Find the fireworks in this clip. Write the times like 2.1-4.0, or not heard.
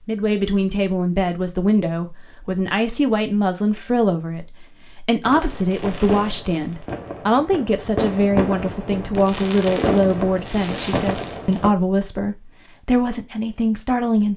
5.2-11.7.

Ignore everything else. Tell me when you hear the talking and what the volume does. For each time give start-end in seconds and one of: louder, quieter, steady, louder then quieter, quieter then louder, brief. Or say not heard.
0.1-14.3 steady.